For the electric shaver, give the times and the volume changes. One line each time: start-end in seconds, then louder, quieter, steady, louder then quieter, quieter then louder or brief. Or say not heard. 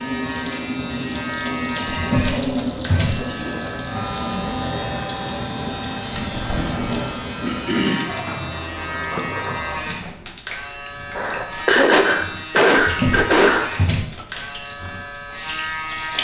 0.0-16.1 steady.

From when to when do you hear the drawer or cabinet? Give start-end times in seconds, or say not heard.
1.9-3.3, 6.1-7.1, 12.8-14.1.